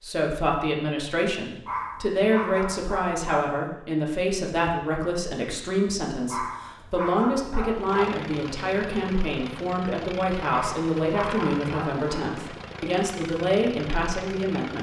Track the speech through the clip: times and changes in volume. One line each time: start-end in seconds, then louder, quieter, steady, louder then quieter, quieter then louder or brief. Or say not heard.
0.0-14.7 steady.